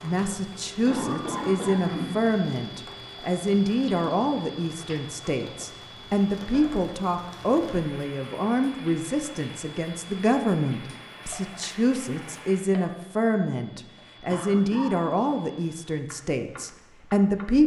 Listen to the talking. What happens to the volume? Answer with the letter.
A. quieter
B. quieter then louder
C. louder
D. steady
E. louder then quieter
D.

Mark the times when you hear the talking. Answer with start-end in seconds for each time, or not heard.
0.0-17.6.